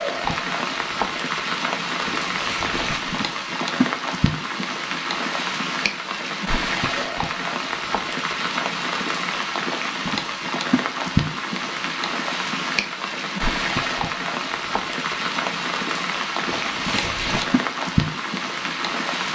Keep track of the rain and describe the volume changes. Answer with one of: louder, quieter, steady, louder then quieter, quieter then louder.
steady.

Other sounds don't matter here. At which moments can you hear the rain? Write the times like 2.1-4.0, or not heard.
0.0-19.3.